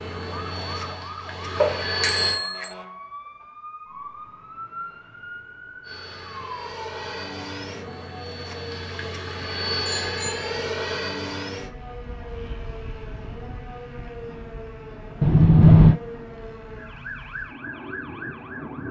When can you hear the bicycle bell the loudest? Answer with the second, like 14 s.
16 s.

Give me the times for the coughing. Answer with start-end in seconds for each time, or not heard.
not heard.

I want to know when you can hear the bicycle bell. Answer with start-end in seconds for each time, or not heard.
1.6-2.8, 9.8-10.4, 15.2-16.0.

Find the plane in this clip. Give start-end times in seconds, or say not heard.
0.0-2.4, 5.8-18.8.